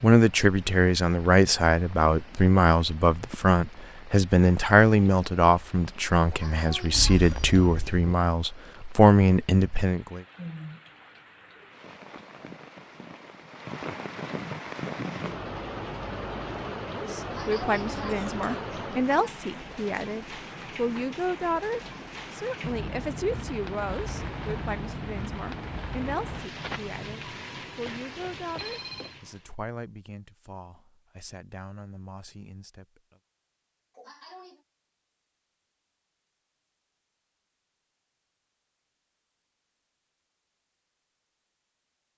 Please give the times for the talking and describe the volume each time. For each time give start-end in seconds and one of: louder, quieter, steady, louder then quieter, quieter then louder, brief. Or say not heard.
0.0-10.2 steady
16.9-33.2 quieter.